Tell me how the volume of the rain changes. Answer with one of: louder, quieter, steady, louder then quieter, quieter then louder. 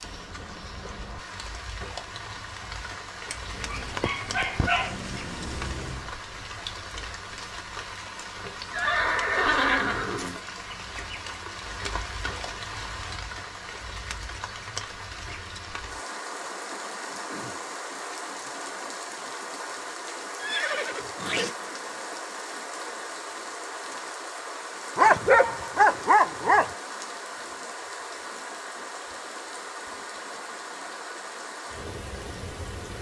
steady.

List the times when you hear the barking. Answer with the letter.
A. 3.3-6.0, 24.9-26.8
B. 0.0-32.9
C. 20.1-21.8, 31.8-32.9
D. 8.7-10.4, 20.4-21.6
A.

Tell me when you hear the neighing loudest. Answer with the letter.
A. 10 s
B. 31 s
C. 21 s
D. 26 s
A.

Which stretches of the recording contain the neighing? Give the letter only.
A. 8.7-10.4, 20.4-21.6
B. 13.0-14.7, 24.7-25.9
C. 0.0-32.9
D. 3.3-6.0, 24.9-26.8
A.